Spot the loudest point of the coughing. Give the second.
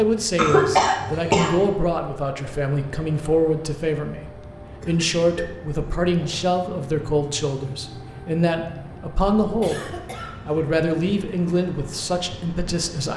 1 s.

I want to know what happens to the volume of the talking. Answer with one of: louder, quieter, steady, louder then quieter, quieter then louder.
steady.